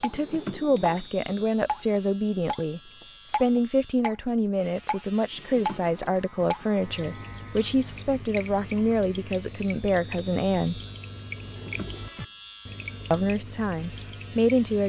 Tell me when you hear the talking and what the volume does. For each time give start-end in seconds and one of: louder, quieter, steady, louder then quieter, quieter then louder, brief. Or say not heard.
0.0-10.8 steady
13.1-14.8 brief.